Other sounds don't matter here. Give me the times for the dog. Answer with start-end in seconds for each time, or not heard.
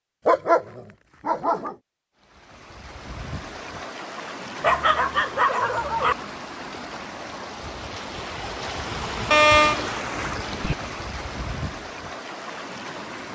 0.2-1.8, 4.6-6.2, 9.3-10.8.